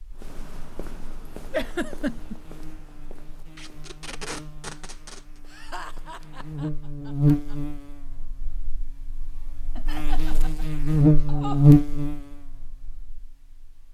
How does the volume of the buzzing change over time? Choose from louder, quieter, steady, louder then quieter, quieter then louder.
louder.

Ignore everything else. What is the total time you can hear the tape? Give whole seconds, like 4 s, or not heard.
2 s.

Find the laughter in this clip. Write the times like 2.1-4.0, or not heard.
1.5-2.4, 5.5-7.5, 9.8-11.7.